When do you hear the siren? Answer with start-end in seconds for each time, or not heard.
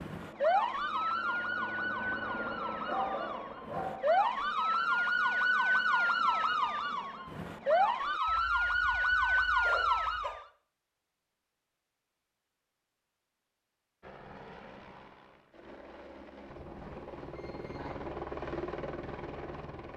0.0-10.4.